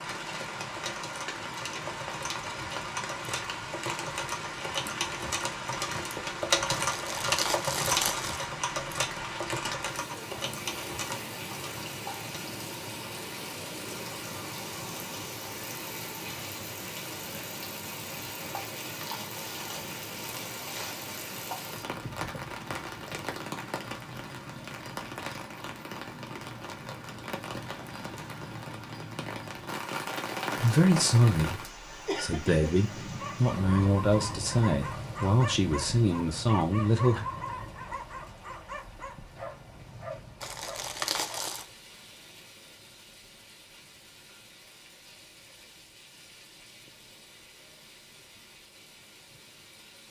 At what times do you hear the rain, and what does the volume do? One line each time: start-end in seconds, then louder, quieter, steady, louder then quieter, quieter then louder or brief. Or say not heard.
0.0-50.0 quieter.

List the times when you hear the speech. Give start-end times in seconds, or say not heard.
30.6-37.2.